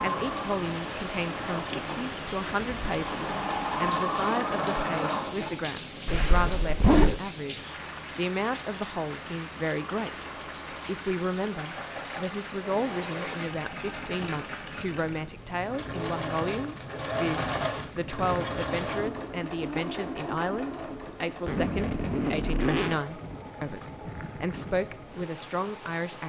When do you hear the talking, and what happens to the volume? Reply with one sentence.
The talking can be heard from 0.0 to 10.2 s, at a steady volume; and from 10.8 to 26.2 s, at a steady volume.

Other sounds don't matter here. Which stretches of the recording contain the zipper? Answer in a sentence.
The zipper can be heard from 6.0 to 7.2 s, from 12.6 to 14.4 s and from 21.4 to 23.0 s.